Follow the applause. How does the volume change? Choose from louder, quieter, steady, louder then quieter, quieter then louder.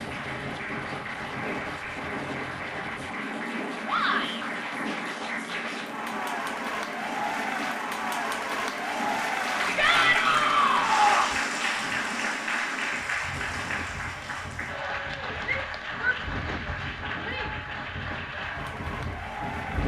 louder then quieter.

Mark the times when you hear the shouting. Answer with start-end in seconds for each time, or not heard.
3.9-4.5, 9.8-11.4, 15.4-17.5.